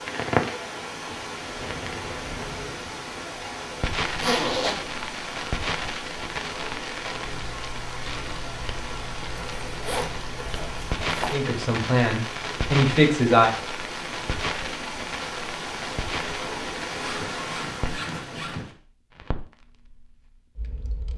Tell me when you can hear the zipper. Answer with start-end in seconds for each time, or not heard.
4.2-4.8, 9.3-11.3, 16.9-18.8.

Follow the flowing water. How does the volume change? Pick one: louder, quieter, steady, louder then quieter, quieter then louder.
steady.